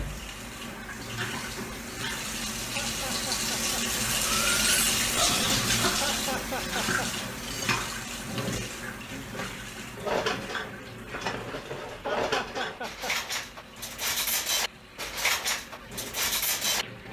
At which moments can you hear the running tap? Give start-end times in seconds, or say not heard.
0.0-17.0.